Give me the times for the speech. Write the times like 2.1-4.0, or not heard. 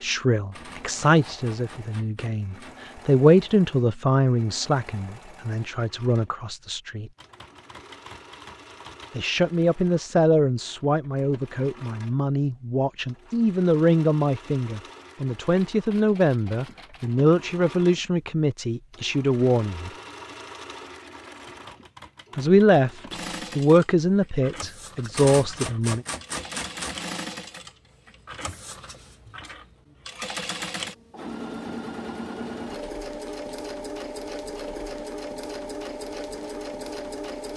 0.0-7.1, 9.2-19.9, 22.4-26.1.